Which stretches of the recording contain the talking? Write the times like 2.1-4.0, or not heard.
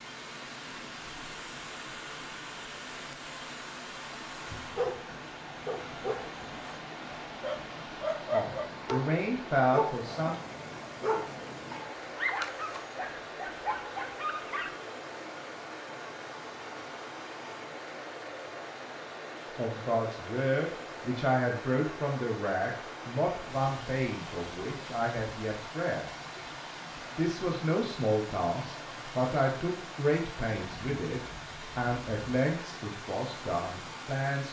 8.3-10.3, 19.4-26.1, 27.1-34.4.